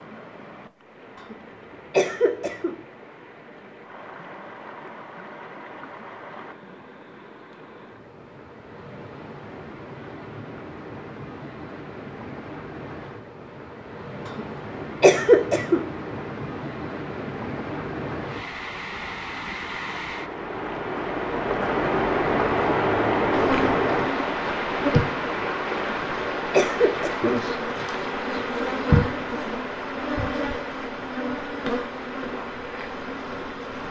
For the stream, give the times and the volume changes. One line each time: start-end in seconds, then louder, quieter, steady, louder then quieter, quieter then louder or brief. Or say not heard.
0.0-33.8 louder then quieter.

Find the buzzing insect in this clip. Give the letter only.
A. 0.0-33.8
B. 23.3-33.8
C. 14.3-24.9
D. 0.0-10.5
B.